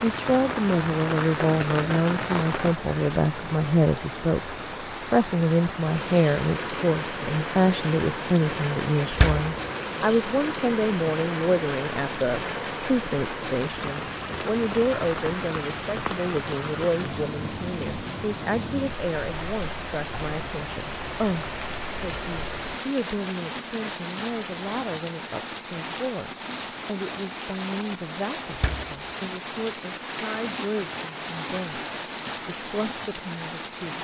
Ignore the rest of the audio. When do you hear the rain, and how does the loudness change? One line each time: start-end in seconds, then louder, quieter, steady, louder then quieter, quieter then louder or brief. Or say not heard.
0.0-33.9 steady.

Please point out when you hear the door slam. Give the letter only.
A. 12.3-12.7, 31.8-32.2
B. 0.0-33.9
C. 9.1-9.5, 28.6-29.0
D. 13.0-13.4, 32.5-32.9
C.